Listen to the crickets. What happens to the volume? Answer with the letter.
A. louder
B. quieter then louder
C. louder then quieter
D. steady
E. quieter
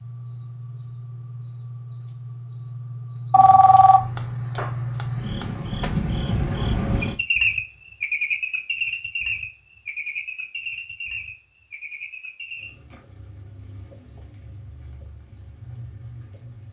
C.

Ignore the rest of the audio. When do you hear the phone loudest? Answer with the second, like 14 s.
4 s.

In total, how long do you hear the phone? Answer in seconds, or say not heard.
3 s.